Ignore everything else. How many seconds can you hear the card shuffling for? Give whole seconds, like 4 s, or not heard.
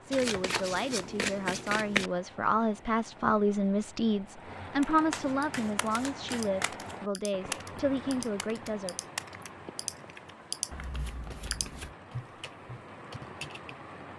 5 s.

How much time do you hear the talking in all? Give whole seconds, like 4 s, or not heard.
9 s.